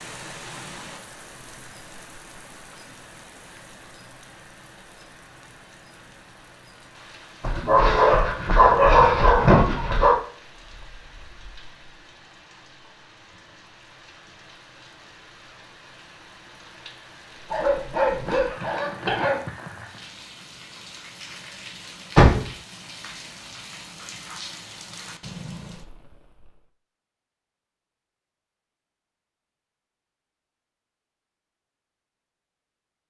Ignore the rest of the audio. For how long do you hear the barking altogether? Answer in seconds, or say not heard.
5 s.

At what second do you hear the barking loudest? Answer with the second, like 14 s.
9 s.